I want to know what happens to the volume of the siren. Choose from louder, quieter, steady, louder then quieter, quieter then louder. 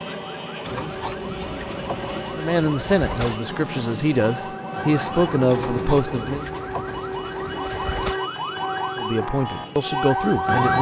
louder.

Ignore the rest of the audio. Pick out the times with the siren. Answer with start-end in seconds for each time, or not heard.
0.0-10.7.